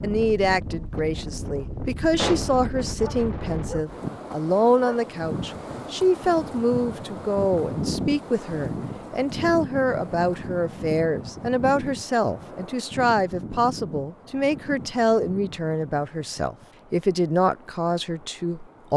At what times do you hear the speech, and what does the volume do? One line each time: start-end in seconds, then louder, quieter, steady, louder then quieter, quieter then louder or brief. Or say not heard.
0.0-18.9 steady.